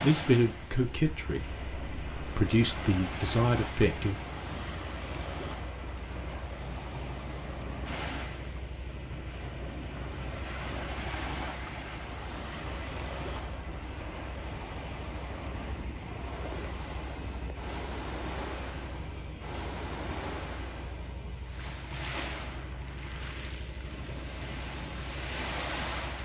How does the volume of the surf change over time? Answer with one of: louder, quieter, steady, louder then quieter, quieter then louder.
steady.